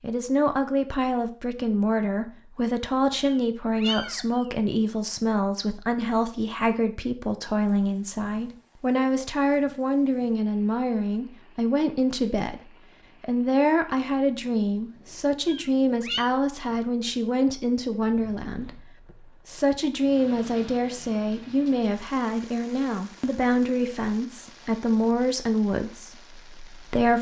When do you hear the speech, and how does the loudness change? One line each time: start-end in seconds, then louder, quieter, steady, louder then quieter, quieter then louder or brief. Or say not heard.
0.0-27.1 steady.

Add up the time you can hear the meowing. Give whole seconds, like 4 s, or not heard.
2 s.